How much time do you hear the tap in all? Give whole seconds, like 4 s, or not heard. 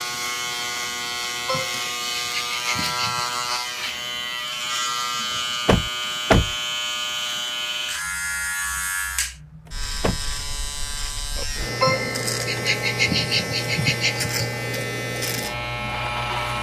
not heard.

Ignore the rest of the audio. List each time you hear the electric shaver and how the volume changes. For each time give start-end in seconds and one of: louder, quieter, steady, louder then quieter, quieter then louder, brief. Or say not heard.
0.0-16.5 steady.